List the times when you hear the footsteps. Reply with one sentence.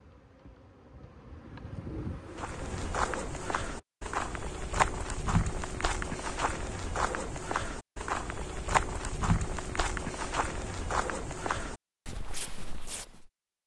You can hear the footsteps from 2.4 to 13.3 s.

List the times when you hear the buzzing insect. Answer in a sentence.
You can hear the buzzing insect from 0.0 to 3.9 s.